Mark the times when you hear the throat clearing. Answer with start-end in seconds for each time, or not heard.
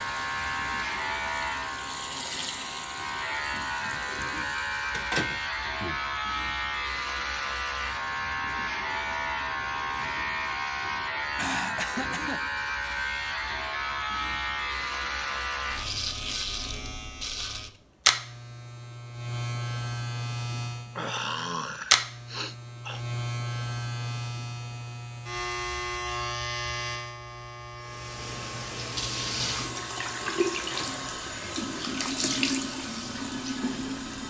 11.3-12.6, 20.9-23.0.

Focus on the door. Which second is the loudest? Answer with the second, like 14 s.
5 s.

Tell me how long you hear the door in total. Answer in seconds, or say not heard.
2 s.